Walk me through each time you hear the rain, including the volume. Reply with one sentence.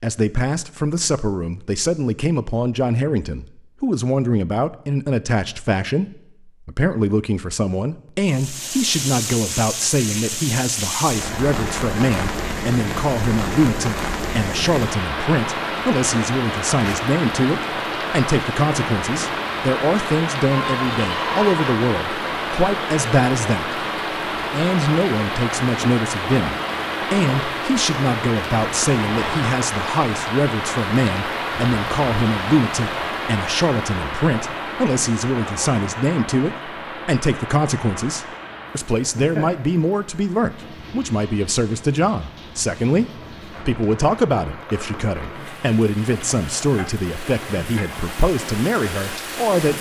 You can hear the rain from 8.2 to 49.7 s, getting quieter.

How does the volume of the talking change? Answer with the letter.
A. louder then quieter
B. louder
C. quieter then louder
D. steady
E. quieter
D.